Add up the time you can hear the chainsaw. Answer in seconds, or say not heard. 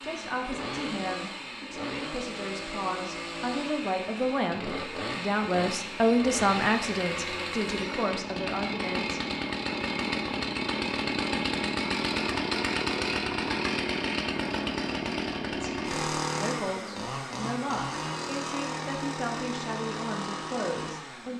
21 s.